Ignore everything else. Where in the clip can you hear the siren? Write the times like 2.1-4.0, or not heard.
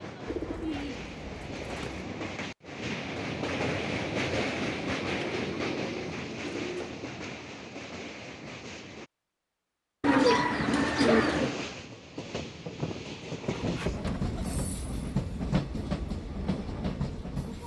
not heard.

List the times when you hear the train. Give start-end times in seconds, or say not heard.
0.0-9.1, 10.7-17.6.